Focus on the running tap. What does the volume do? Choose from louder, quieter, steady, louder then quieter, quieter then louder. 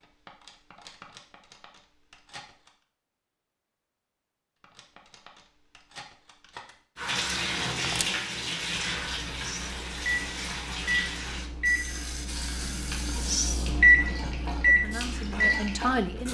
quieter.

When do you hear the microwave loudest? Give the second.
14 s.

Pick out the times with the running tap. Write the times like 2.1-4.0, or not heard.
7.0-16.2.